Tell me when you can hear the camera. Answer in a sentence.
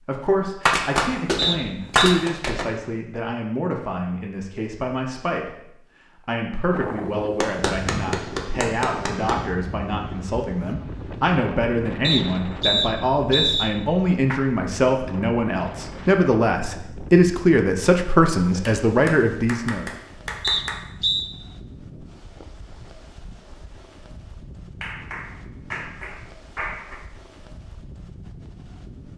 You can't hear the camera here.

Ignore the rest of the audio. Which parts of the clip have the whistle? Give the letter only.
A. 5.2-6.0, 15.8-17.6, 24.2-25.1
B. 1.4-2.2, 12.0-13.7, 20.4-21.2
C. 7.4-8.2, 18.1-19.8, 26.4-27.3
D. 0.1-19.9
B.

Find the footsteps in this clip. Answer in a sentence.
The footsteps can't be heard in this clip.